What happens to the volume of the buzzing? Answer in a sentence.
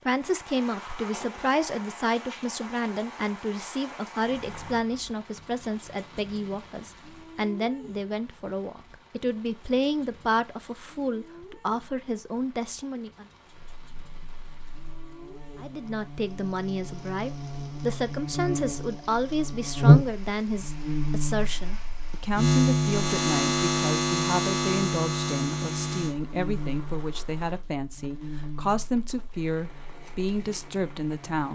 The volume of the buzzing goes up, then down.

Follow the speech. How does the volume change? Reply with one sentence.
The volume of the speech stays about the same.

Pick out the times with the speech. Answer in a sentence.
The speech can be heard from 0.1 to 13.2 s and from 15.6 to 31.5 s.